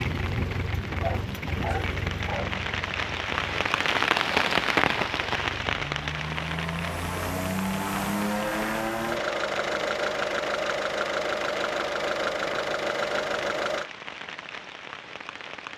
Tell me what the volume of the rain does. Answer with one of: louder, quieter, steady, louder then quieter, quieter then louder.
louder then quieter.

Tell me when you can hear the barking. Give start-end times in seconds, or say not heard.
1.0-2.6.